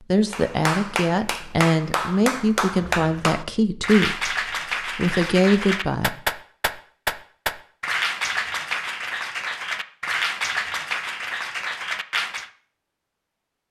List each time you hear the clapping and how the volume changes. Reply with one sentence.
The clapping can be heard from 0.3 to 12.5 s, at a steady volume.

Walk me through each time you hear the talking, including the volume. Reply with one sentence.
The talking can be heard from 0.1 to 4.3 s, at a steady volume; and briefly from 5.0 to 6.2 s.